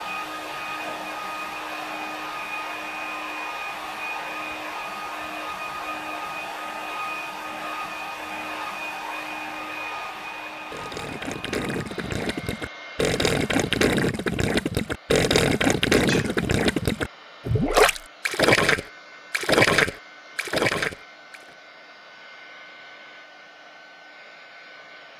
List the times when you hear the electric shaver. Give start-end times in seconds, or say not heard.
not heard.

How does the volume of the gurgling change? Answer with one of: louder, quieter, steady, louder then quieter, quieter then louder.
louder.